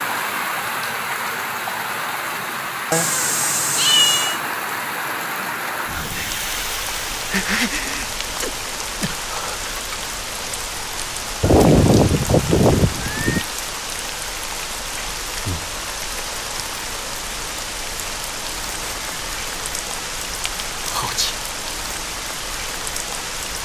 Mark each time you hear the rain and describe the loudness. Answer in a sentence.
The rain can be heard from 0.0 to 23.6 s, at a steady volume.